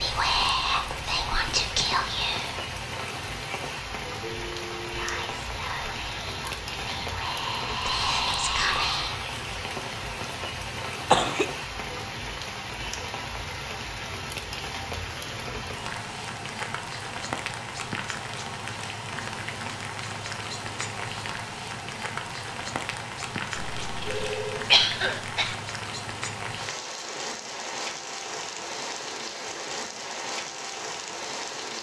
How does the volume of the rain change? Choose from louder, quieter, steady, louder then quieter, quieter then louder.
steady.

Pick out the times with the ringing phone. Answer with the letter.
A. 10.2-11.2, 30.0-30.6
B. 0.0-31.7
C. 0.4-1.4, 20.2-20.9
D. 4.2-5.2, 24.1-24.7
D.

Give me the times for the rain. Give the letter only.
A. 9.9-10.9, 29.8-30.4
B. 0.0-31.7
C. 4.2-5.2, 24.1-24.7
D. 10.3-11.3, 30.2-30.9
B.